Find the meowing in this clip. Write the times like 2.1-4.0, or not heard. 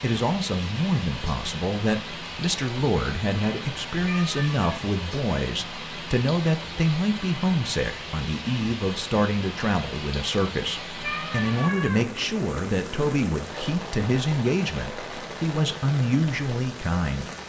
4.0-4.7, 11.0-12.1.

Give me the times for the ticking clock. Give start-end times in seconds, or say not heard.
not heard.